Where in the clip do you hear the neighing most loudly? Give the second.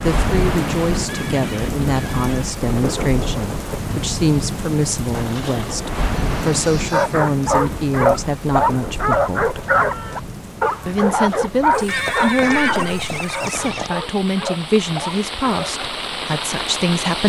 13 s.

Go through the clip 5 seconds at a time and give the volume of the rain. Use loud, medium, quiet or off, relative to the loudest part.
loud, loud, medium, loud.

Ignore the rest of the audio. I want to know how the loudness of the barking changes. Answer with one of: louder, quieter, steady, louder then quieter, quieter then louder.
quieter.